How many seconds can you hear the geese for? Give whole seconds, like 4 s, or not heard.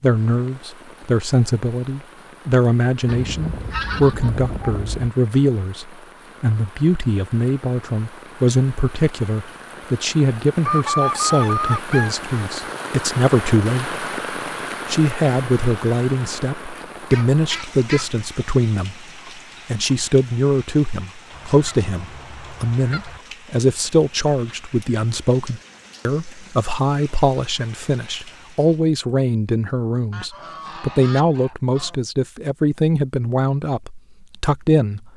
9 s.